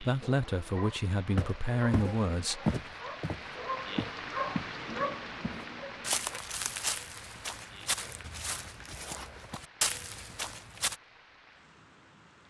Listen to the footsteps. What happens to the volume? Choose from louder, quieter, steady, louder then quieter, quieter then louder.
quieter then louder.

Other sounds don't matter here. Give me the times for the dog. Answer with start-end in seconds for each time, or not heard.
0.2-6.4.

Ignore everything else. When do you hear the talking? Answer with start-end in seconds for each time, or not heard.
0.0-2.7.